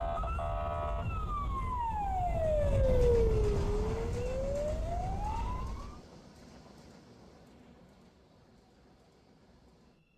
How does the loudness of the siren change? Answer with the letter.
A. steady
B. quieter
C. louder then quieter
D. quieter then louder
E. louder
C.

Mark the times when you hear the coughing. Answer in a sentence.
The coughing can't be heard in this clip.